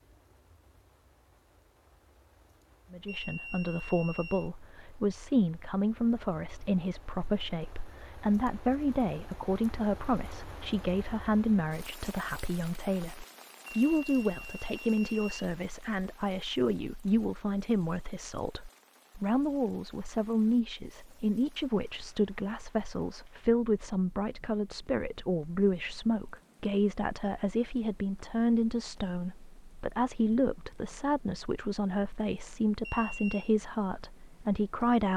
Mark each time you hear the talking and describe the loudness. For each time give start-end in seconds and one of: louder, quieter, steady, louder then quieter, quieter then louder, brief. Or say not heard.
2.9-35.1 steady.